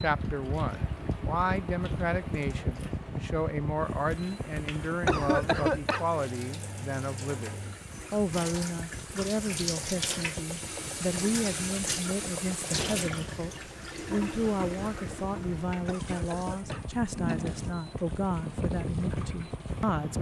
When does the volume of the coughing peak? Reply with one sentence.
The loudest moment of the coughing is at 6 seconds.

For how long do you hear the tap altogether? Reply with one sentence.
You can hear the tap for 20 seconds altogether.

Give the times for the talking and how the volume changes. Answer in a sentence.
You can hear the talking from 0.0 to 20.1 s, at a steady volume.